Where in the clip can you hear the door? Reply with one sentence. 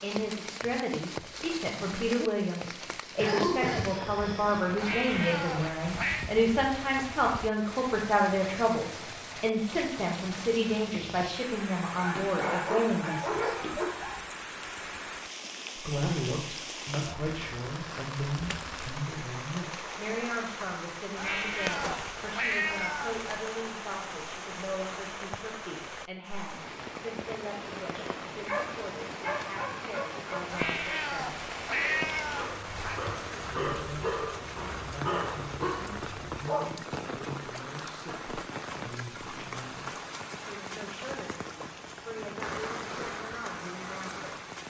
You can't hear the door here.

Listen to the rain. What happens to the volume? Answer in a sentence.
The loudness of the rain stays about the same.